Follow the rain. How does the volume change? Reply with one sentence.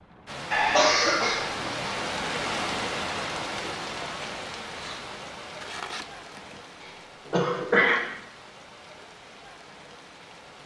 The loudness of the rain goes down.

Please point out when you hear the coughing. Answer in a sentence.
The coughing can be heard from 0.5 to 1.7 s and from 6.8 to 8.0 s.